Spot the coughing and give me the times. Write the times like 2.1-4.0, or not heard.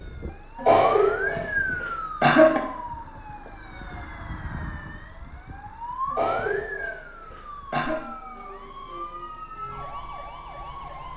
0.6-2.6, 6.1-8.0.